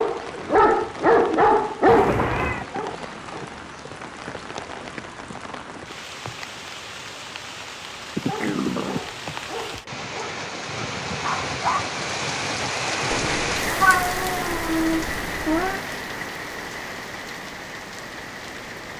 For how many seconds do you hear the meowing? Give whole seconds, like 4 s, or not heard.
4 s.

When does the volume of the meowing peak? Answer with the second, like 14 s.
14 s.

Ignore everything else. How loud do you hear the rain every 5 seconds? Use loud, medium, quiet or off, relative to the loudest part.
medium, medium, loud, medium.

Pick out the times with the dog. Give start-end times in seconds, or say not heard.
0.0-3.5, 8.2-11.9.